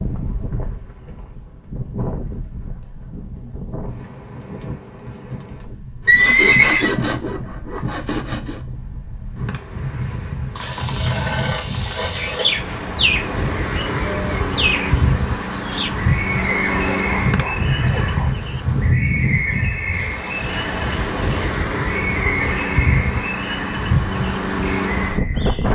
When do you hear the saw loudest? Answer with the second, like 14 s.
7 s.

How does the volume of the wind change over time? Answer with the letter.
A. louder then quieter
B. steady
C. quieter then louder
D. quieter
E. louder
E.